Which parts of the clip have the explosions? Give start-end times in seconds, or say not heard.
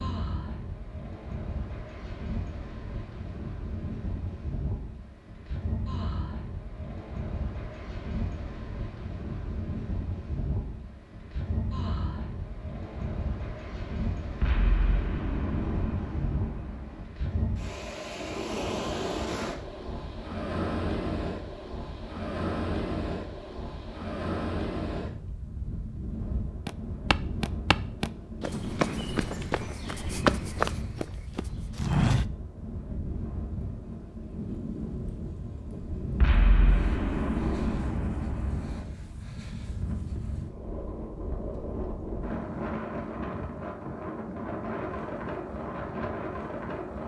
14.4-17.1, 36.2-38.9.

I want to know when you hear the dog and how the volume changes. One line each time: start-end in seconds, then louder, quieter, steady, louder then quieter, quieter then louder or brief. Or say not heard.
not heard.